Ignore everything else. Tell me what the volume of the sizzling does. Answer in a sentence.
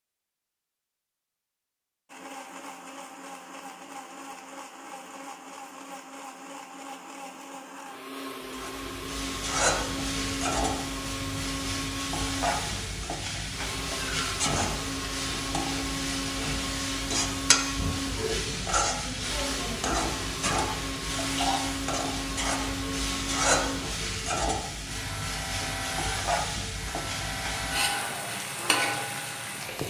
The loudness of the sizzling stays about the same.